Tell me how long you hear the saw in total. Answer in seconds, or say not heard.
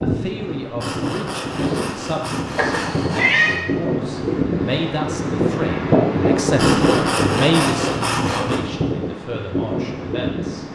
5 s.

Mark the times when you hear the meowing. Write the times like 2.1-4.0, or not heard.
2.5-3.6.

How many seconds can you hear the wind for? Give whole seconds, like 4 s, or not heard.
11 s.